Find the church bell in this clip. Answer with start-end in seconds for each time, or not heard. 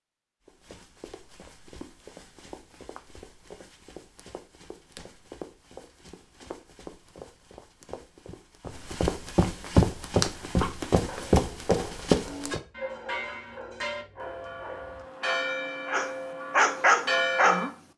12.2-17.6.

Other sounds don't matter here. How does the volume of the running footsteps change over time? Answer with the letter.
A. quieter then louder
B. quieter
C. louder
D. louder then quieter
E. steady
C.